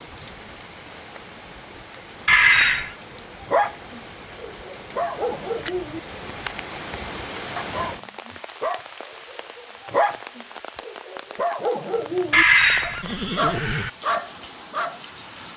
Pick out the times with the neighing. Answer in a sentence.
The neighing can be heard from 2.2 to 3.0 s and from 12.3 to 13.9 s.